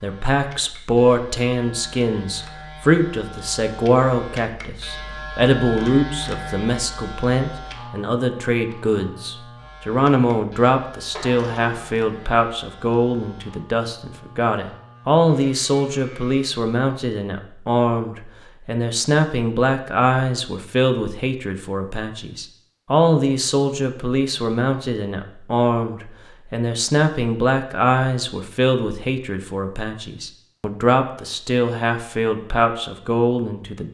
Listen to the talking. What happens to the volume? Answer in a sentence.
The loudness of the talking stays about the same.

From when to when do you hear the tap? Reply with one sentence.
The tap can't be heard in this clip.